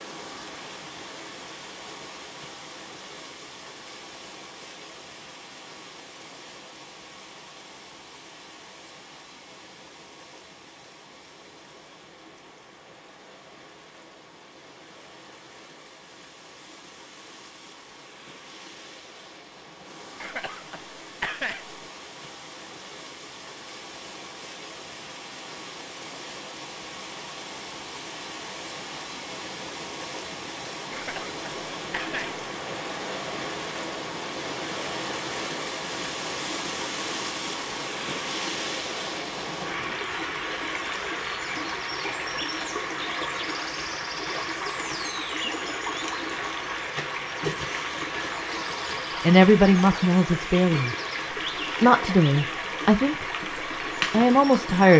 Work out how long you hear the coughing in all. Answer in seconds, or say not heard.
3 s.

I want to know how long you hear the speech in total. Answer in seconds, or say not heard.
4 s.